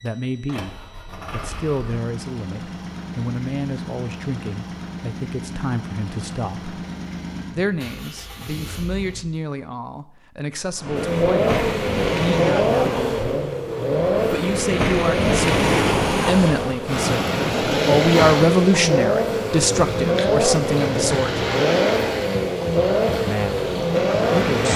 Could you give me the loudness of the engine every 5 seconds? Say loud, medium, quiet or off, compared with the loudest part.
quiet, quiet, loud, loud, loud.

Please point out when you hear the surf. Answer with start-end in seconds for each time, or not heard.
10.8-24.7.